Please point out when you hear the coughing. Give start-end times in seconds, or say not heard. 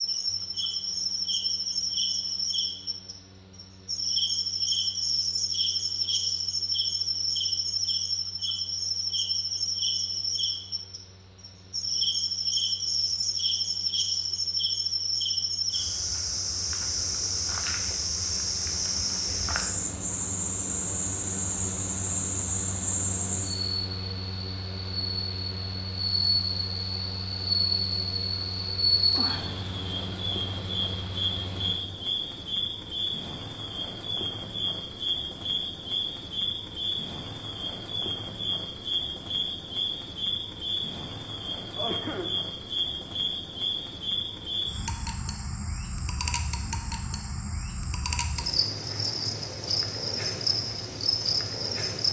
41.8-42.4.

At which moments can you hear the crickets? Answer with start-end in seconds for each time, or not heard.
0.0-52.0.